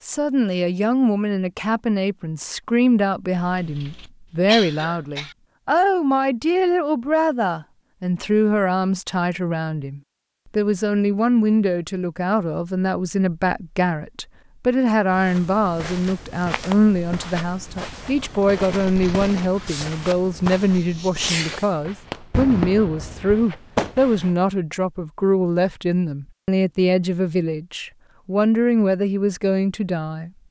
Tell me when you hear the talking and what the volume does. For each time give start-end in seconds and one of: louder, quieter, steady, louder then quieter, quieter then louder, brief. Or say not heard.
0.0-30.3 steady.